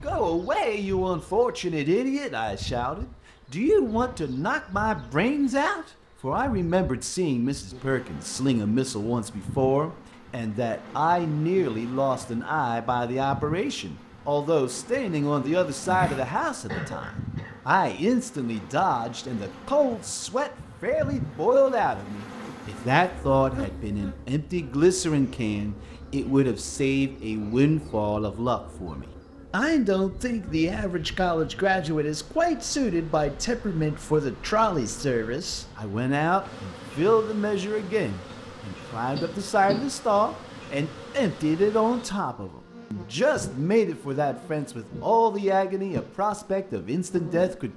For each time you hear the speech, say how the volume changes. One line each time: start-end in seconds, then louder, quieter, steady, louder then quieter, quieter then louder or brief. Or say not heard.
0.0-47.7 steady.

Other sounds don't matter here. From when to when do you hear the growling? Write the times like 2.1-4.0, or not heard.
15.8-16.4.